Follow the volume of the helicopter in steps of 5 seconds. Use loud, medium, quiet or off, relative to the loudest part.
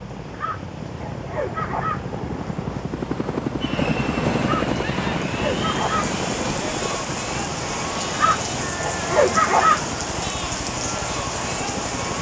loud, loud, medium.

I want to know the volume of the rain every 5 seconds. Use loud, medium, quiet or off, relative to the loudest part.
quiet, loud, loud.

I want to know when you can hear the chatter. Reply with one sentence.
You can hear the chatter from 3.6 to 12.1 s.